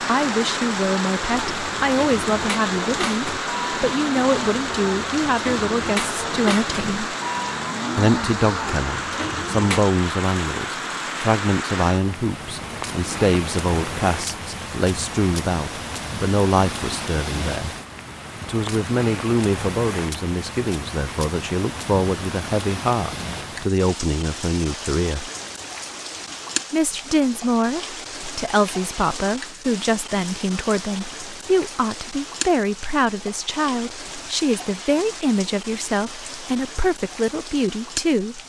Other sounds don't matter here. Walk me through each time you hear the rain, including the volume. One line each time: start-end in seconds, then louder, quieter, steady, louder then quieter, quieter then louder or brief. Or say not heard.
0.0-38.4 quieter.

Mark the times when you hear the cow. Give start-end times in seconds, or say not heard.
1.3-9.9.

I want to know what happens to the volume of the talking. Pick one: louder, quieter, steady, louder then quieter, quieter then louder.
steady.